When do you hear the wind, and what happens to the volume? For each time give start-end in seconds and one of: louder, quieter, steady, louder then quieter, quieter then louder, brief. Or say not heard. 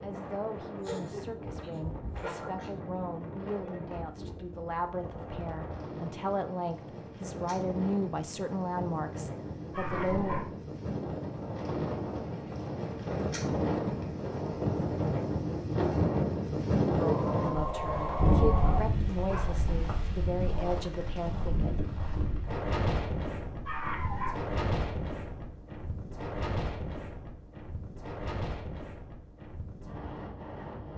0.0-30.9 louder then quieter.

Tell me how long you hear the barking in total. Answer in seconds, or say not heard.
6 s.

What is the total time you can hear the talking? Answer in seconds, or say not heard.
15 s.